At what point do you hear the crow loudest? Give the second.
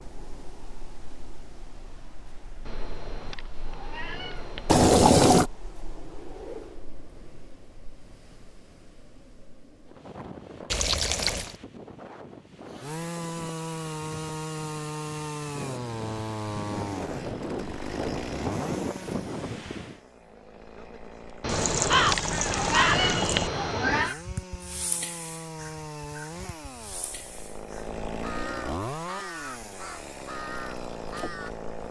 22 s.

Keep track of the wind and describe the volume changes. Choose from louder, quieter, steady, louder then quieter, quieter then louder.
louder.